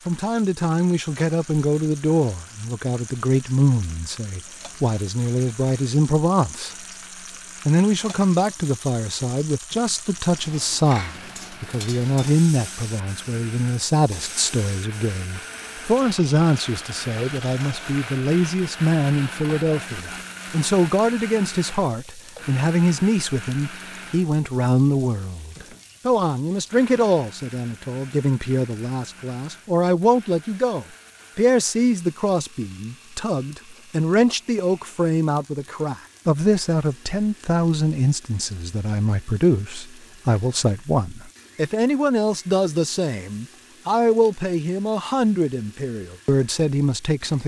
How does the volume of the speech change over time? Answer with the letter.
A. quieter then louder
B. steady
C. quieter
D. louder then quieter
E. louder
B.